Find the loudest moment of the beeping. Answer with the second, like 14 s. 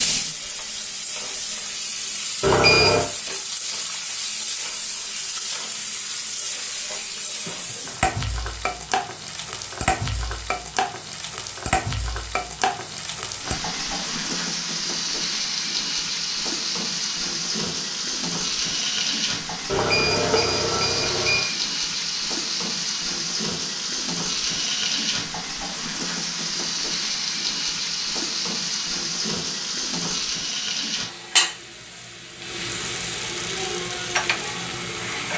3 s.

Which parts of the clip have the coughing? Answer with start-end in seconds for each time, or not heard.
not heard.